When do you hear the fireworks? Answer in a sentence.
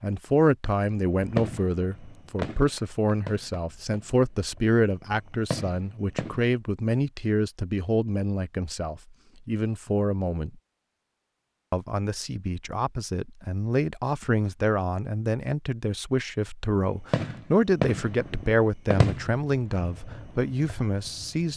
The fireworks can be heard from 0.9 to 6.5 s and from 17.1 to 21.5 s.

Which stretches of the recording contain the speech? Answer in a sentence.
The speech can be heard from 0.0 to 10.6 s and from 11.7 to 21.5 s.